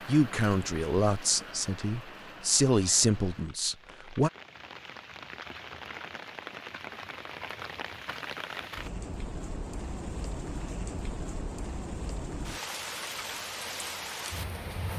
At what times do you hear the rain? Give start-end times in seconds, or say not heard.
0.0-14.9.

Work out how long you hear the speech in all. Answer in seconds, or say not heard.
4 s.